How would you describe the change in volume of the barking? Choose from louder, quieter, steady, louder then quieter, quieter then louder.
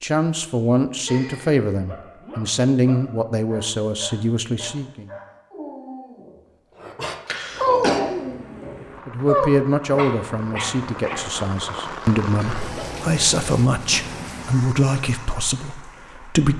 louder.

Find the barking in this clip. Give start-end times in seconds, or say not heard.
1.8-11.3.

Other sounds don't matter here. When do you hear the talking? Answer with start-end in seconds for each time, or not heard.
0.0-5.1, 9.1-16.5.